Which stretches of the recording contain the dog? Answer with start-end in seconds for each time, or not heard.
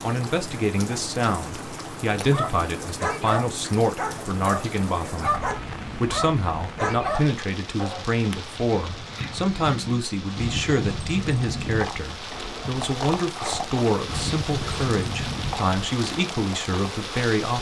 2.3-8.1.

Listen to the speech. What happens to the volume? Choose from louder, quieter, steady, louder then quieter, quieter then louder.
steady.